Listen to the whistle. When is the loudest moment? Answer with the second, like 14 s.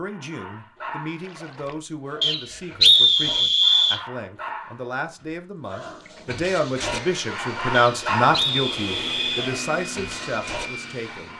3 s.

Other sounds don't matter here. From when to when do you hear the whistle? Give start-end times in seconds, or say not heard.
2.2-4.0, 7.7-9.5.